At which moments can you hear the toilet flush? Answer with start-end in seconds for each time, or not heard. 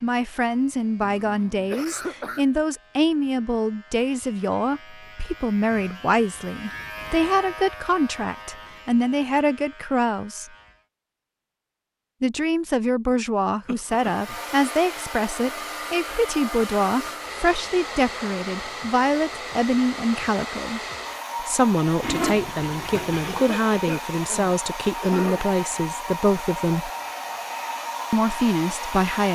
22.0-23.4.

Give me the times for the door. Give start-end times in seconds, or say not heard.
not heard.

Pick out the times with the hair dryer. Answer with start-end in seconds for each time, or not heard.
13.8-29.3.